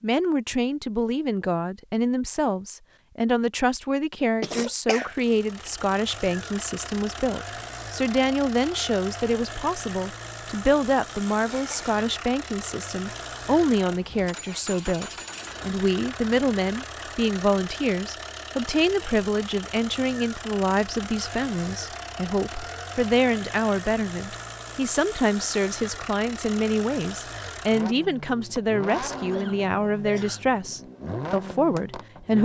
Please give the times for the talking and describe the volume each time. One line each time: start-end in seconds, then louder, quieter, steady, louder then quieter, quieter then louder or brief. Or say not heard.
0.0-32.3 steady.